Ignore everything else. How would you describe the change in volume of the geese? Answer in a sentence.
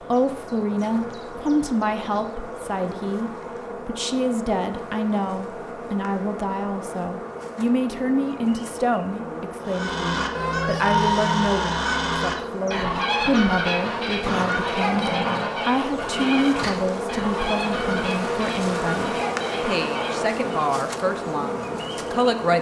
The volume of the geese goes down.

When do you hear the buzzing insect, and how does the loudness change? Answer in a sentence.
The buzzing insect can be heard from 0.0 to 22.5 s, getting louder.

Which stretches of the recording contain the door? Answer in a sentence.
The door can't be heard in this clip.